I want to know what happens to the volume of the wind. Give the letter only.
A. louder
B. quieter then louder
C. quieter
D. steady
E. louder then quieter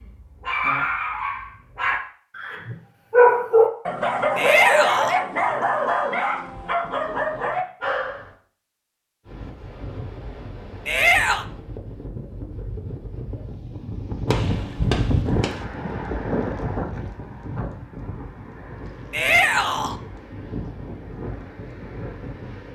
E.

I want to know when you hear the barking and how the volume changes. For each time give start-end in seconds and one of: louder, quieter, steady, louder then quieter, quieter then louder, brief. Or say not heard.
0.0-8.3 louder then quieter.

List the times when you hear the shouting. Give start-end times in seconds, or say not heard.
4.3-5.2, 10.8-11.4, 19.1-19.9.